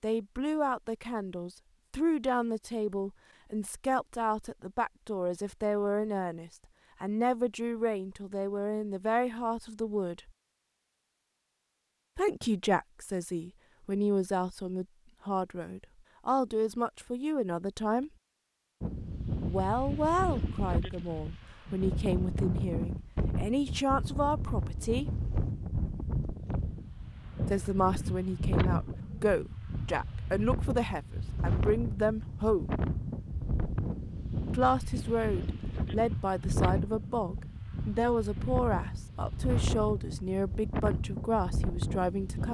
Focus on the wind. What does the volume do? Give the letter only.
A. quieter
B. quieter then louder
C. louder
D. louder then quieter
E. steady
E.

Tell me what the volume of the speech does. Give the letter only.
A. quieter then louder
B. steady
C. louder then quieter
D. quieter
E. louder
B.